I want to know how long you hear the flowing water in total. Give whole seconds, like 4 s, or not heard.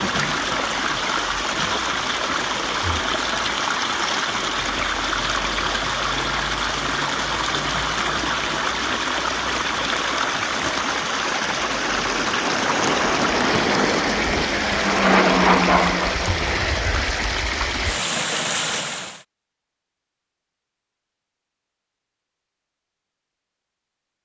19 s.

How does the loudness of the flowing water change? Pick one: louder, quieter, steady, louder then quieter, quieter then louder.
steady.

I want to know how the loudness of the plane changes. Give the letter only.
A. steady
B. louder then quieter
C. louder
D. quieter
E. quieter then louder
C.